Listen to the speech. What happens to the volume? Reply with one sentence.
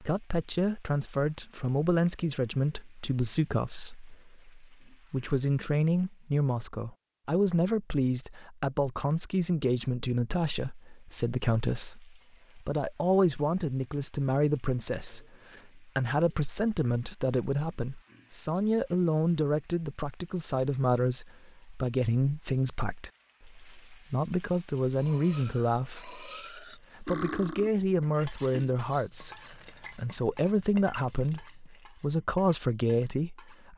The volume of the speech stays about the same.